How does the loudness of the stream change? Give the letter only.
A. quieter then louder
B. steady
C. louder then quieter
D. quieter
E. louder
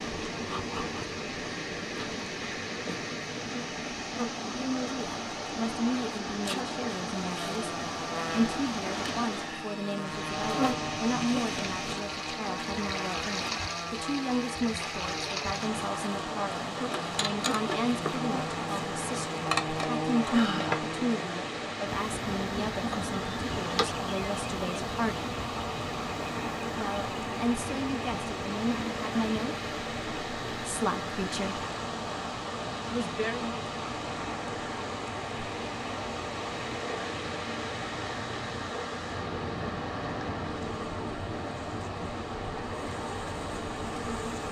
B.